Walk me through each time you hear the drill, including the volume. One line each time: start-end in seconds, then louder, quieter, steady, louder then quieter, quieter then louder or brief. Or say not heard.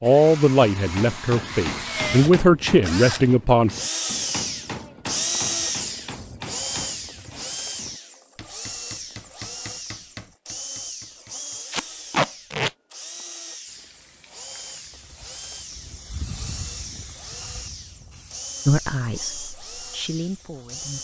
0.0-20.9 quieter.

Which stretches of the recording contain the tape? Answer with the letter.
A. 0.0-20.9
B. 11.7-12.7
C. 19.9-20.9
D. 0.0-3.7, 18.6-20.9
B.